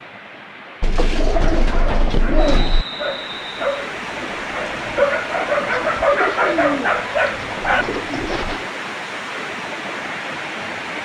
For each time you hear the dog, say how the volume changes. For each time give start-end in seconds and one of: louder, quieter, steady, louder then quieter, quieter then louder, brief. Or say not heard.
1.3-8.2 louder.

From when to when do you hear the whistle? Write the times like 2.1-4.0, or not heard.
2.4-3.9.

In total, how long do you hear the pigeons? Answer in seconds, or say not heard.
5 s.